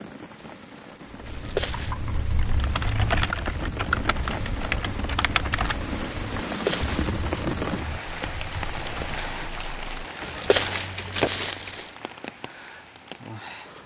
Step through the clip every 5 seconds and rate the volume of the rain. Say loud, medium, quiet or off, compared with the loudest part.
medium, loud, medium.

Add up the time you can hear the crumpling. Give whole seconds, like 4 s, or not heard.
3 s.